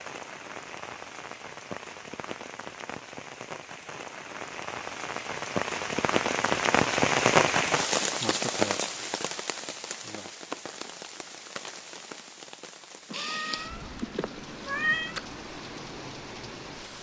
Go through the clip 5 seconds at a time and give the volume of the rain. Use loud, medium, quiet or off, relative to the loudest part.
quiet, loud, quiet, quiet.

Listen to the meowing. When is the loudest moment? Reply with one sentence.
The loudest moment of the meowing is at 15 seconds.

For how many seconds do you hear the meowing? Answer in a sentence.
You can hear the meowing for 2 seconds altogether.